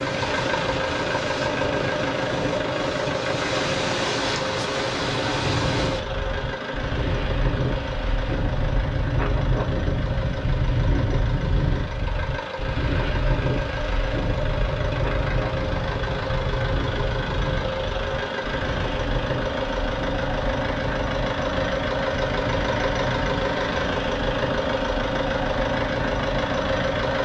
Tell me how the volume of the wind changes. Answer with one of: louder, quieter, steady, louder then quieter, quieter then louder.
quieter.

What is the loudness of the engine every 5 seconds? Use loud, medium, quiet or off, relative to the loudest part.
loud, medium, medium, loud, loud, loud.